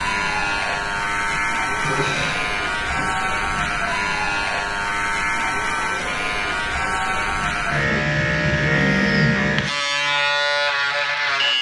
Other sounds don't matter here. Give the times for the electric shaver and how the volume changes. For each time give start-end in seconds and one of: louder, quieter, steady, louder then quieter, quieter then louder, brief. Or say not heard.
0.0-11.5 steady.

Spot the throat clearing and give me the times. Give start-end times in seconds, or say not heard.
0.7-3.1, 8.7-9.3.